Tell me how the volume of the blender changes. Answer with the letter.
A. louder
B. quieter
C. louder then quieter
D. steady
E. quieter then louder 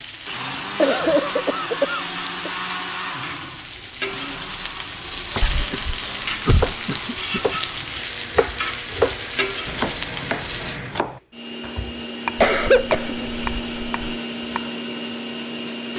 E.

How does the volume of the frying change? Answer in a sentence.
The loudness of the frying goes up.